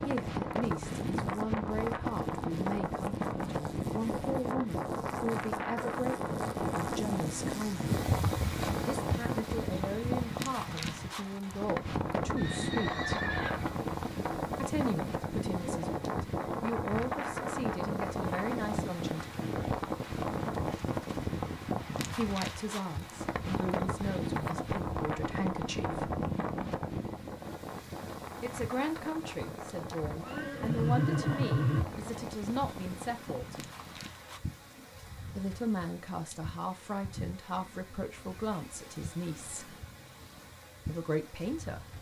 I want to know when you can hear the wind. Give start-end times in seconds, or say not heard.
0.0-34.4.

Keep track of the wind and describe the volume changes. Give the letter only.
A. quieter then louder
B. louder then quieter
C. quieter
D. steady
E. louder
C.